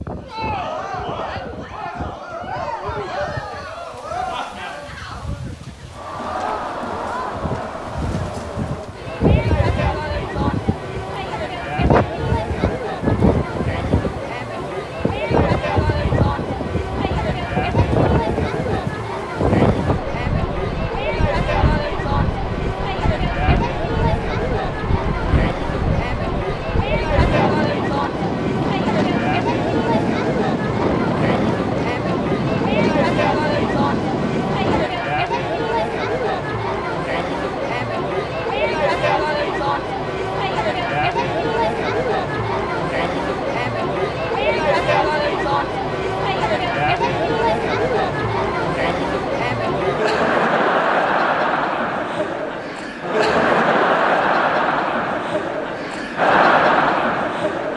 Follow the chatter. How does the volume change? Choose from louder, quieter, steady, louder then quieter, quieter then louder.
louder.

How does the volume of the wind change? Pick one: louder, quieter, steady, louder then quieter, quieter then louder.
louder.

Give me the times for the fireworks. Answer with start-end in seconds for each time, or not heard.
not heard.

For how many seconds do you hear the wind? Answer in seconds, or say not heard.
35 s.